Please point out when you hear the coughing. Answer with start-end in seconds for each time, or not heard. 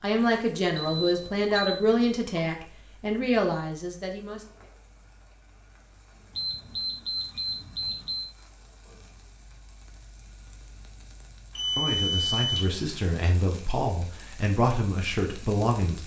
not heard.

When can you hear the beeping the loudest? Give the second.
12 s.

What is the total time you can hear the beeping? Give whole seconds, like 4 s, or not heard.
4 s.